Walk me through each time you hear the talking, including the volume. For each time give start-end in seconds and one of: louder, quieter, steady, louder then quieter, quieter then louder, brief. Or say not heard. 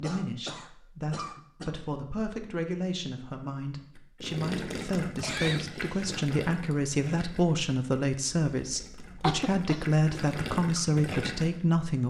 0.0-12.0 louder.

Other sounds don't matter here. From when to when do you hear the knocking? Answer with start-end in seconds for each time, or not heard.
not heard.